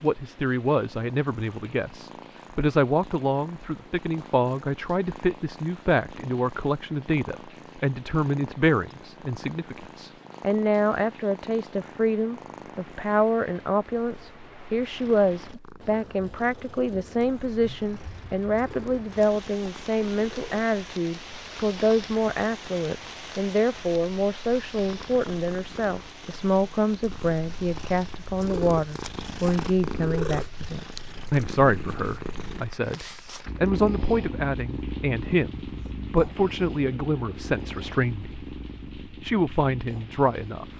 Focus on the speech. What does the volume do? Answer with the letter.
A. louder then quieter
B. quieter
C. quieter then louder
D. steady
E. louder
D.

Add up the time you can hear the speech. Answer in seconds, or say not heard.
41 s.